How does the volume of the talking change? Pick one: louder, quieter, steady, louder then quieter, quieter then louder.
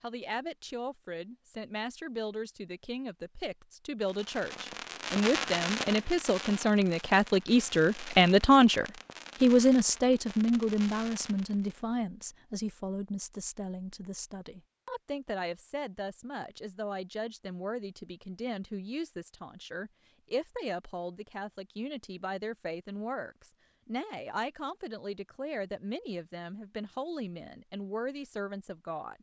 louder then quieter.